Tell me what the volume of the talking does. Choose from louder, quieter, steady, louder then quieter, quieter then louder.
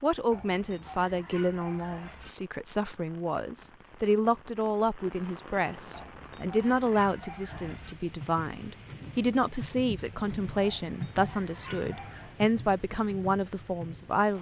steady.